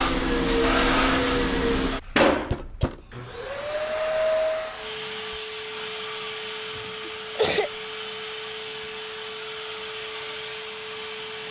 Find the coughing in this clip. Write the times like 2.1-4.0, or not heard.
2.5-3.5, 6.8-7.7.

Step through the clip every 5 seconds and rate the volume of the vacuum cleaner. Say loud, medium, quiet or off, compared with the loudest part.
loud, medium, medium.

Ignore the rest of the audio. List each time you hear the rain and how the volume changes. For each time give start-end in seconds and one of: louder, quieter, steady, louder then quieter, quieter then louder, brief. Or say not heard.
not heard.